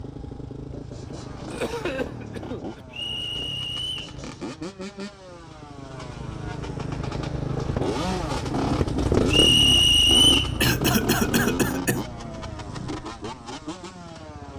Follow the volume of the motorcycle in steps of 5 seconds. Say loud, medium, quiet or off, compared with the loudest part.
medium, loud, loud.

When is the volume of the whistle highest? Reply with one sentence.
The loudest moment of the whistle is at 10 seconds.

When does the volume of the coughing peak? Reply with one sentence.
The volume of the coughing peaks at 11 seconds.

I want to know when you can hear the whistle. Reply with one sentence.
You can hear the whistle from 2.9 to 4.2 s and from 9.3 to 10.6 s.